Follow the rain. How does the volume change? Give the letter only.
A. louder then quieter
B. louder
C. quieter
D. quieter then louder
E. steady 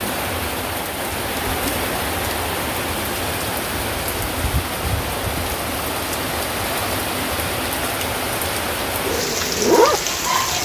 E.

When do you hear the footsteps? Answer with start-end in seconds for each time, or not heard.
not heard.